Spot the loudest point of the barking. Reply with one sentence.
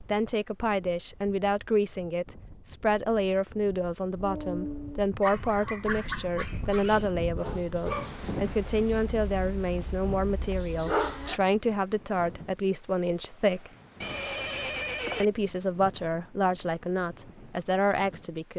The volume of the barking peaks at 11 seconds.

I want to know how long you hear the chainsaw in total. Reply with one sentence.
The chainsaw can't be heard in this clip.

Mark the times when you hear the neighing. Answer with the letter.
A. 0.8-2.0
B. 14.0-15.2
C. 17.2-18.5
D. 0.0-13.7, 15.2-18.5
B.